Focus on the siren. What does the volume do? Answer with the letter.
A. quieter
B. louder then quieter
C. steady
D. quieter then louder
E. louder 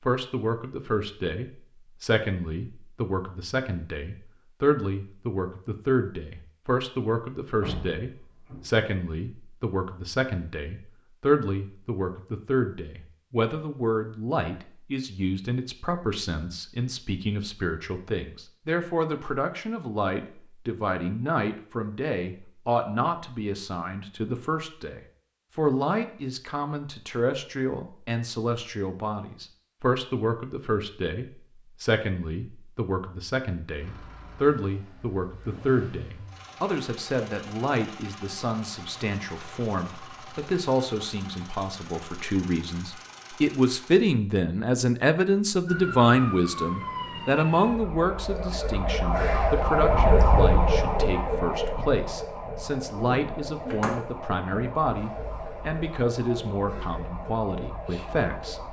B.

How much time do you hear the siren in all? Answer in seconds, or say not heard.
13 s.